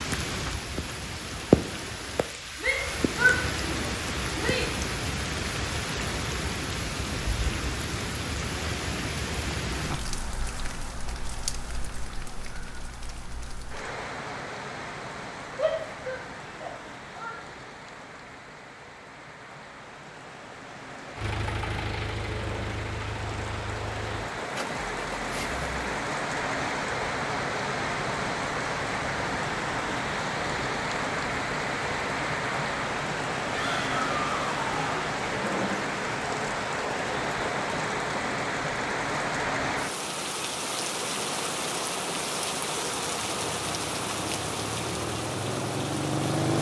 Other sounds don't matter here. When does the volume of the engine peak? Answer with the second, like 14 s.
22 s.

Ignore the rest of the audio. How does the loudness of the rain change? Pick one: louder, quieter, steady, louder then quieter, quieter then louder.
quieter then louder.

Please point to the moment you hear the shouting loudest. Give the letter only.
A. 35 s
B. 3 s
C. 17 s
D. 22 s
B.